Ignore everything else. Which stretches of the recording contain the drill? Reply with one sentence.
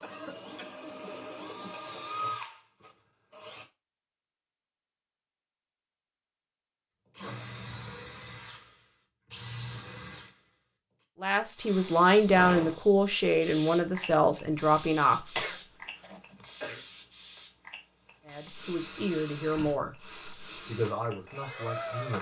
The drill can be heard from 0.0 to 3.6 s, from 7.2 to 11.1 s and from 18.4 to 22.1 s.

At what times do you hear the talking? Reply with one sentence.
You can hear the talking from 11.2 to 15.4 s, from 18.2 to 19.9 s and from 20.6 to 22.1 s.